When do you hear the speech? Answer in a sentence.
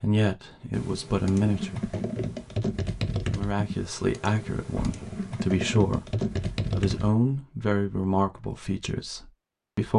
You can hear the speech from 0.0 to 2.0 s, from 3.3 to 6.0 s and from 6.7 to 9.9 s.